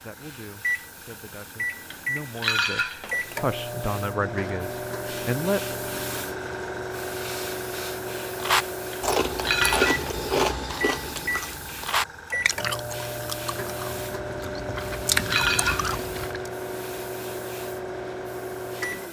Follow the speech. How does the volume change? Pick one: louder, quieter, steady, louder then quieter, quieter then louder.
louder.